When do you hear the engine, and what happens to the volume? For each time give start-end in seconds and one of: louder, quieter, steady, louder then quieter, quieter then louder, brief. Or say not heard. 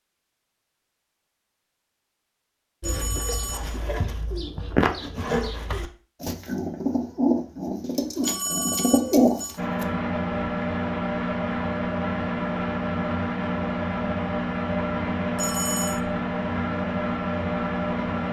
9.6-18.2 steady.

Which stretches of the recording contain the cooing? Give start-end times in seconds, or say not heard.
2.8-9.8.